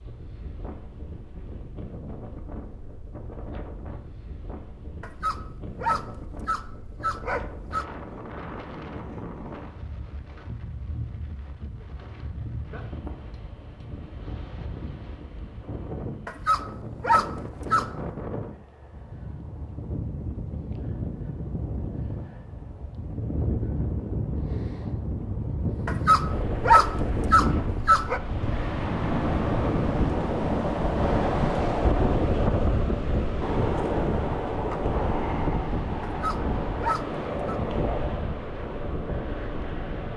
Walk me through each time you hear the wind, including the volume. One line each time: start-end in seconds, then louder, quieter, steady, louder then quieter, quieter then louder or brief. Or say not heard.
0.0-40.1 louder.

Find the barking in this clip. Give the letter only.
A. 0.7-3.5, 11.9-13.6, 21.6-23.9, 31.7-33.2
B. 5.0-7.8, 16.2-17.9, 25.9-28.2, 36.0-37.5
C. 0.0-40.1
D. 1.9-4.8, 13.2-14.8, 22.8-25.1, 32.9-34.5
B.